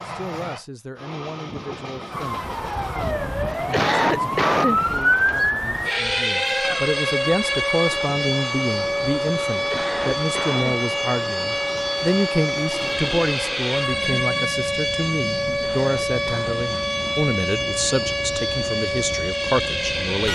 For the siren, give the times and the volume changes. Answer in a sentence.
You can hear the siren from 2.1 to 20.3 s, at a steady volume.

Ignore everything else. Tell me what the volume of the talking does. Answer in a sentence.
The loudness of the talking goes up.